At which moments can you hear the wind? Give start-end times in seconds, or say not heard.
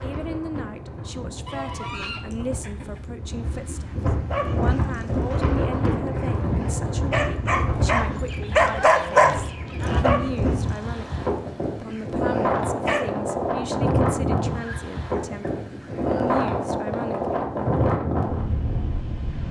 0.0-19.4.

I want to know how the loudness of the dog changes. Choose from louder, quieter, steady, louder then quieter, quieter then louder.
louder then quieter.